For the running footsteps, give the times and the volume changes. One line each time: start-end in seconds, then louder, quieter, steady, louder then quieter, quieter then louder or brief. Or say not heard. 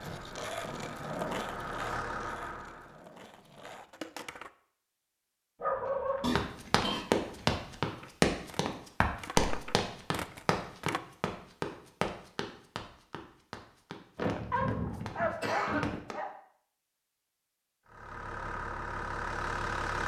6.3-16.1 quieter.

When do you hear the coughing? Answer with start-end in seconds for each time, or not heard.
6.2-7.0, 14.2-16.0.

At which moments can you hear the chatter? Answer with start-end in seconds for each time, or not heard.
not heard.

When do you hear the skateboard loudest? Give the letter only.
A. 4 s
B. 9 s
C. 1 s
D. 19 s
C.